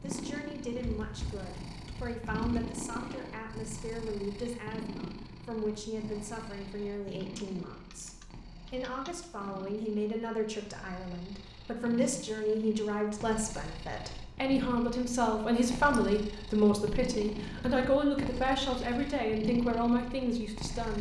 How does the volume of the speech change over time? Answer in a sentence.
The loudness of the speech goes up.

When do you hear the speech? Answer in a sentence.
The speech can be heard from 0.0 to 20.9 s.